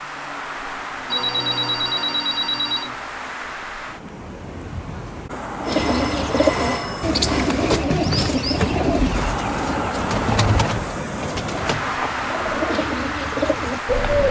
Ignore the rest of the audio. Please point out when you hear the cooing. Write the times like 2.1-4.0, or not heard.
5.6-14.2.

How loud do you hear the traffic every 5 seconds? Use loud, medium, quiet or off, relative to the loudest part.
medium, loud, loud.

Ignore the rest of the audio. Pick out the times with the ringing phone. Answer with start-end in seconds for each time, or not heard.
1.1-3.0, 5.6-7.5, 11.8-12.5.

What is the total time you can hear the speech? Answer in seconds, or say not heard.
not heard.